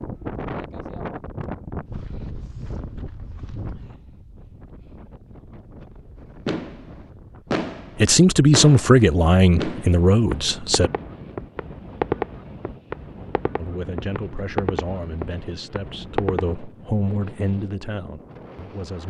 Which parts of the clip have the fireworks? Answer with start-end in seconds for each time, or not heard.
6.5-16.6.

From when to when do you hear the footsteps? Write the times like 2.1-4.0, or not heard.
not heard.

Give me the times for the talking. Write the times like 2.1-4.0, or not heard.
8.0-10.9, 13.6-19.0.